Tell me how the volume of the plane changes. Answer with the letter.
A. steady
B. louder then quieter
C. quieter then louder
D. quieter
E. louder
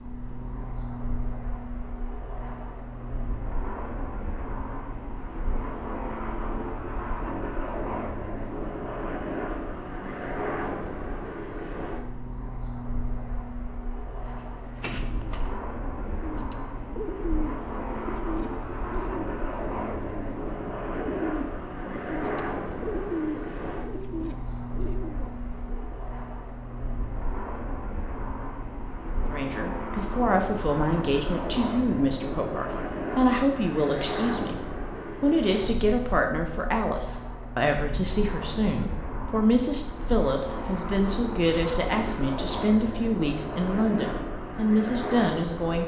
A.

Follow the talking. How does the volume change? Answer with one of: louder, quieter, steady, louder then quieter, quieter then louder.
steady.